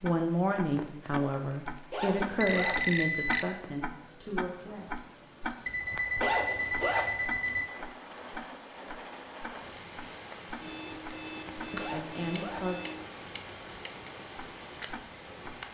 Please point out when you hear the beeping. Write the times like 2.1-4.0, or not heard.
2.4-3.5, 5.7-7.7, 10.6-13.1.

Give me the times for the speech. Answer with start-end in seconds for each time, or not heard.
0.0-4.8, 11.7-12.8.